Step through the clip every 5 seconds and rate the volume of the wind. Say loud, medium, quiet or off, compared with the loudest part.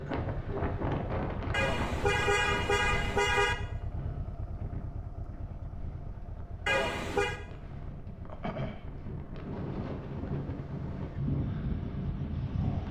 loud, medium, loud.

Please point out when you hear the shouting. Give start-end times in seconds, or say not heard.
not heard.